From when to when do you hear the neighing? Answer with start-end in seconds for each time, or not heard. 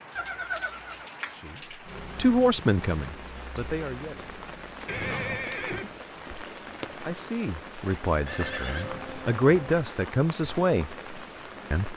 0.1-1.1, 4.8-5.9, 8.2-9.8.